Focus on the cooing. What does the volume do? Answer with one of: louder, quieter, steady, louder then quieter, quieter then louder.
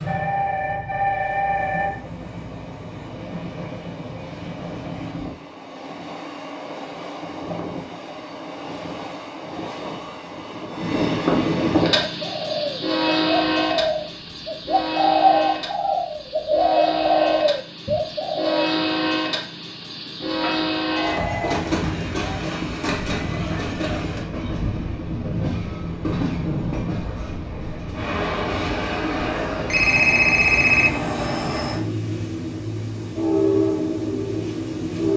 louder.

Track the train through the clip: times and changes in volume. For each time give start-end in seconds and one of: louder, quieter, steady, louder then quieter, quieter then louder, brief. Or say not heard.
0.0-35.1 louder.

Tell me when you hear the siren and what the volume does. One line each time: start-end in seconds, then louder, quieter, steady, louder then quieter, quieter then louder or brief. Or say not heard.
not heard.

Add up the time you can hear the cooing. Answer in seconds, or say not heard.
7 s.